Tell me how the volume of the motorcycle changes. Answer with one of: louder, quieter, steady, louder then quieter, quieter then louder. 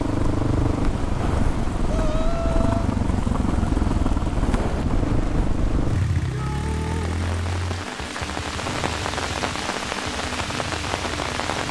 quieter.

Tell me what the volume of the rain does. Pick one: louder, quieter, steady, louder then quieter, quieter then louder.
louder.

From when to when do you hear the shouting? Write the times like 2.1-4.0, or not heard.
1.9-2.9, 6.2-7.2.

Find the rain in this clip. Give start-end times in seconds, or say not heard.
0.0-11.6.